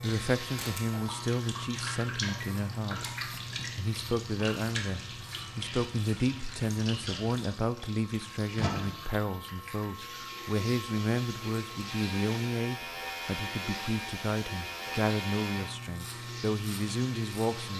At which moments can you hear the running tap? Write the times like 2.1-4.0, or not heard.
0.0-17.7.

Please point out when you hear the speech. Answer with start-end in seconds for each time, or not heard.
0.0-3.0, 3.8-17.7.